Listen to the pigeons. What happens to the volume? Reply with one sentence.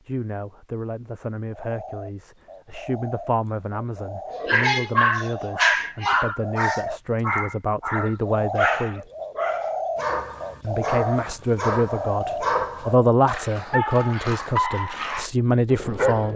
The loudness of the pigeons goes up.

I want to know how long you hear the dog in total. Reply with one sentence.
The dog can be heard for 12 seconds in total.